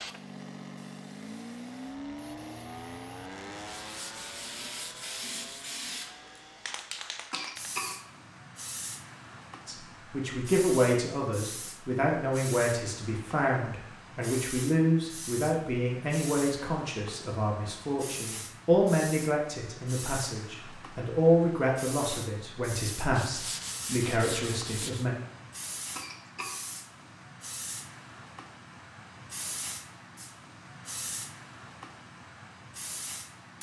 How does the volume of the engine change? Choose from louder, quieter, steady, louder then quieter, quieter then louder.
quieter.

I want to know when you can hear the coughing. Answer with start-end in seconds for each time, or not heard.
7.3-8.0, 25.9-26.6.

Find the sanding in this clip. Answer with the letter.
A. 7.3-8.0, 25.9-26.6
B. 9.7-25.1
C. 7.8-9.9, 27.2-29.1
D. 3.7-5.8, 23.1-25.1
D.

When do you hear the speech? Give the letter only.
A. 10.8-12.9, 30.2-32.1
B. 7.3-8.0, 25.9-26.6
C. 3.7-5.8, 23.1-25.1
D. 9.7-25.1
D.